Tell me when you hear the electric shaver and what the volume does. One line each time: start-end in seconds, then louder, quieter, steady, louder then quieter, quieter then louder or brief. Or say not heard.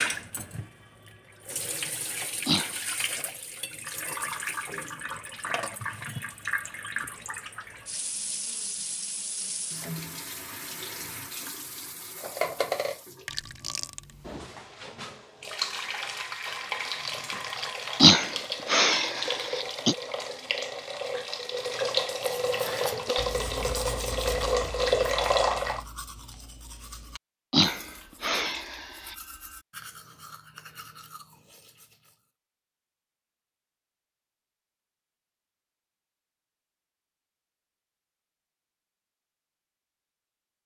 not heard.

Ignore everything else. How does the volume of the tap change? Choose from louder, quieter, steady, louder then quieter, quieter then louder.
louder.